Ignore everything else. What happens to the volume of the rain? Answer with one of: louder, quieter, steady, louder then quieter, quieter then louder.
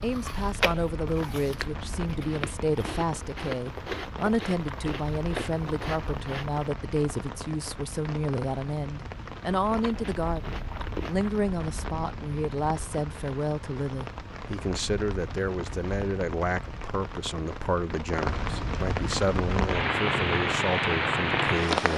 louder.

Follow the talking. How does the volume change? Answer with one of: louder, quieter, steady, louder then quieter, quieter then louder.
steady.